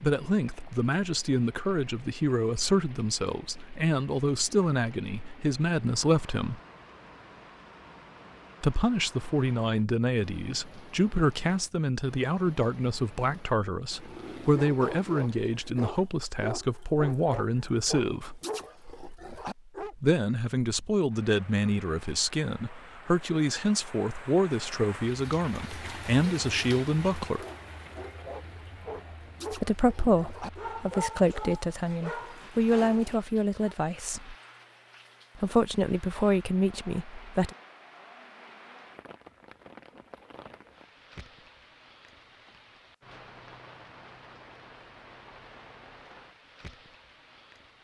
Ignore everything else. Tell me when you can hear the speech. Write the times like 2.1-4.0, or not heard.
0.0-6.6, 8.6-18.4, 19.9-27.4, 29.5-34.4, 35.4-37.5.